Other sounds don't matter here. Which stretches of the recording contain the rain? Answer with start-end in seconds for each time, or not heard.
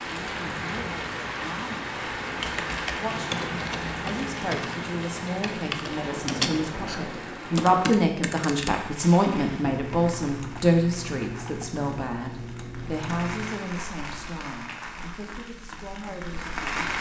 0.0-16.9.